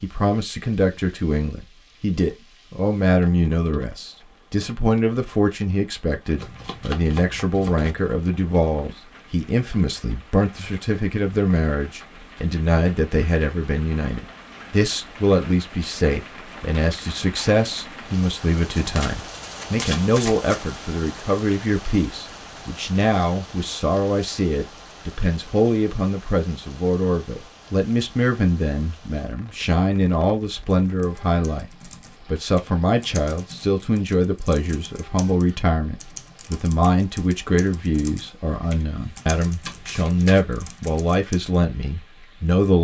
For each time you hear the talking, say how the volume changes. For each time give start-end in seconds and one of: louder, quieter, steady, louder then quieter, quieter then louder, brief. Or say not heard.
0.0-31.6 steady
32.2-42.7 steady.